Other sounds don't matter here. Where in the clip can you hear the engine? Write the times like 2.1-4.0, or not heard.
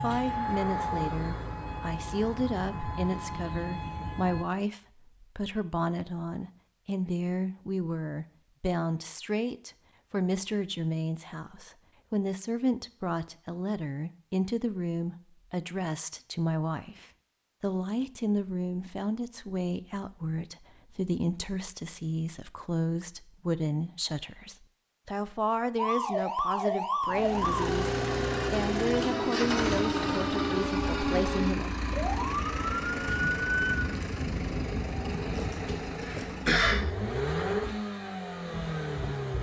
27.1-39.3.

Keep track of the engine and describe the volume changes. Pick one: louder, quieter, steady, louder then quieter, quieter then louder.
steady.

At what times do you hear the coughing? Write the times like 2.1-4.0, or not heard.
36.0-36.8.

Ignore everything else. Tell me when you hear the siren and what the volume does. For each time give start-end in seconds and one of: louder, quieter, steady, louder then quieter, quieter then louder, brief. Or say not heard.
0.0-4.5 quieter
25.8-33.8 steady.